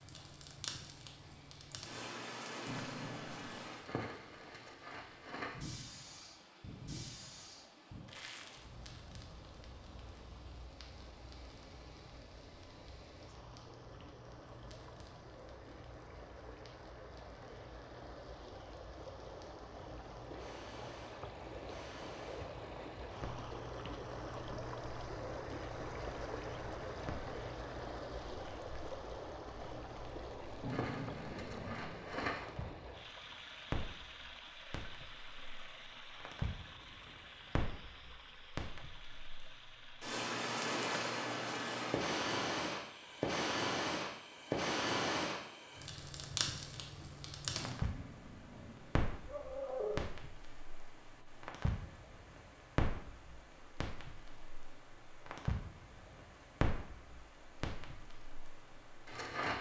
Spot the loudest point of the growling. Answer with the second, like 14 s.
50 s.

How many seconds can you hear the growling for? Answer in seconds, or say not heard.
5 s.